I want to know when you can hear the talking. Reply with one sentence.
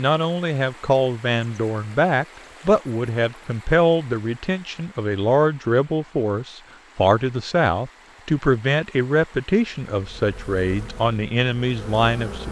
The talking can be heard from 0.0 to 12.4 s.